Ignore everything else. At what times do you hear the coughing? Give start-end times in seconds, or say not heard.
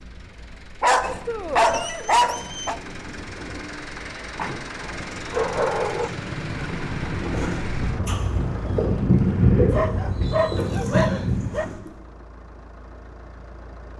not heard.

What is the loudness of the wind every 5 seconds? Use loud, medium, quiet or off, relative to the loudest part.
quiet, loud, loud.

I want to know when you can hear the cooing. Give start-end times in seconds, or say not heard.
7.3-11.9.